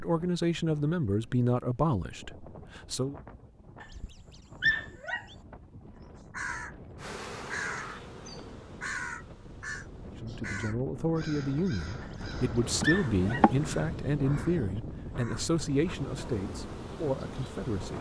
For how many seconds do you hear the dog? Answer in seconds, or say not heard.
3 s.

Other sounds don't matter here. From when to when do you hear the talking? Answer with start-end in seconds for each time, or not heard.
0.0-3.1, 10.2-17.9.